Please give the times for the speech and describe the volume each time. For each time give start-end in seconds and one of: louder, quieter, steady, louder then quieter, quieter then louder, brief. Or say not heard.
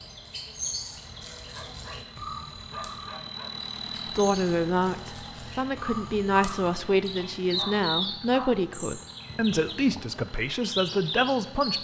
4.0-11.7 steady.